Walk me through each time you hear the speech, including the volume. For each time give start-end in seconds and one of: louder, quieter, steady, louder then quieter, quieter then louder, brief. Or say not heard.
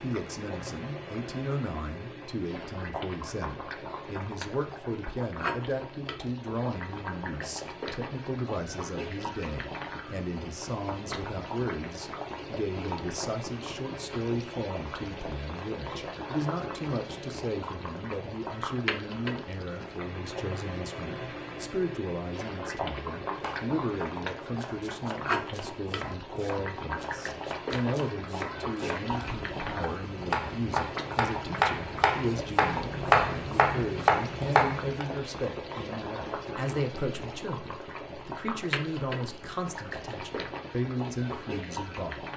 0.0-42.3 steady.